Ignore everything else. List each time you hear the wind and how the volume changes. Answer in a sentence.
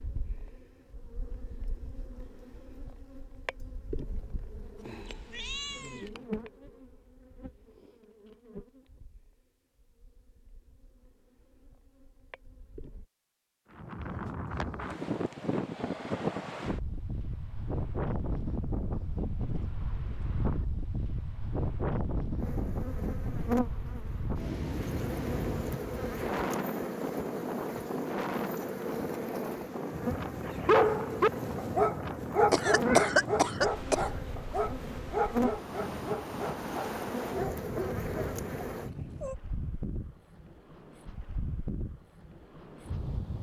The wind can be heard from 13.7 to 43.3 s, getting quieter.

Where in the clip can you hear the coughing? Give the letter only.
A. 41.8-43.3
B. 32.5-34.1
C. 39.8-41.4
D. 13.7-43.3
B.